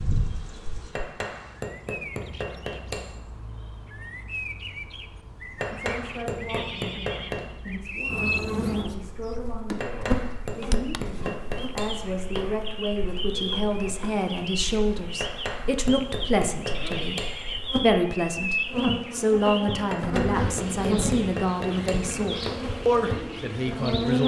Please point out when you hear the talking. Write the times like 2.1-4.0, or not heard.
5.7-24.2.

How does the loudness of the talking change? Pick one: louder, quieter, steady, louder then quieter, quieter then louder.
louder.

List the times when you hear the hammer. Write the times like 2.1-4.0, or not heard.
0.9-3.1, 5.5-7.5, 9.8-12.7, 15.2-17.8, 19.9-22.6.